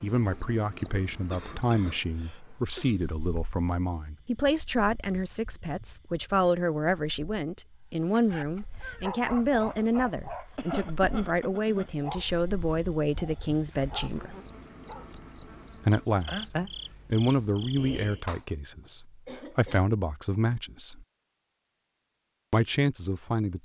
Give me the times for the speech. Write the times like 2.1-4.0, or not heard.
0.0-14.3, 15.8-21.1, 22.5-23.6.